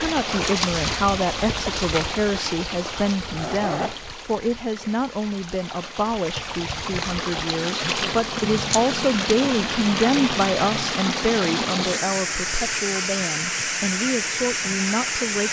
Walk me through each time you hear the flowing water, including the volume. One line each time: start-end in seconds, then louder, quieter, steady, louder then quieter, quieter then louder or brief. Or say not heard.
0.0-15.4 quieter then louder.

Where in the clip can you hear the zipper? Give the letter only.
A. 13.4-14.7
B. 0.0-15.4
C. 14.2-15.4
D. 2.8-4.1
D.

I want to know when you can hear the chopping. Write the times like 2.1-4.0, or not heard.
not heard.